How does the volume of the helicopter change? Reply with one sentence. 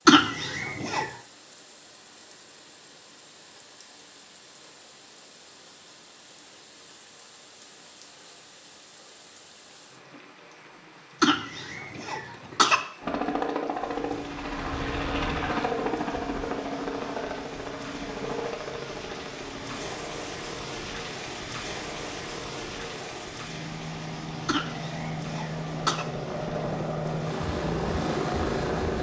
The volume of the helicopter goes down, then up.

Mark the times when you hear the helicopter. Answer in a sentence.
The helicopter can be heard from 13.0 to 28.9 s.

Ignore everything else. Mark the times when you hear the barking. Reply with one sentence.
The barking can't be heard in this clip.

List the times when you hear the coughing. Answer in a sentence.
You can hear the coughing from 0.1 to 1.1 s, from 11.2 to 12.8 s and from 24.4 to 26.1 s.